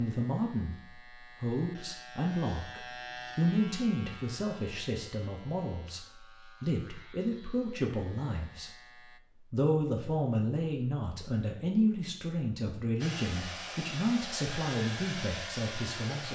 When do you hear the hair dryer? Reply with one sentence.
You can hear the hair dryer from 13.0 to 16.3 s.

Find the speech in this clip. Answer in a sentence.
The speech can be heard from 0.0 to 8.7 s and from 9.5 to 16.3 s.